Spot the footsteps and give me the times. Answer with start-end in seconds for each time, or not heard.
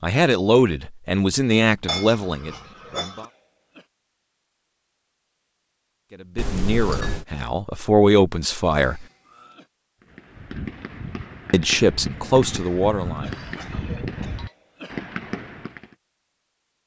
not heard.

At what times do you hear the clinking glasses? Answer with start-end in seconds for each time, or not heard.
1.9-3.2, 6.3-7.2, 13.7-14.6.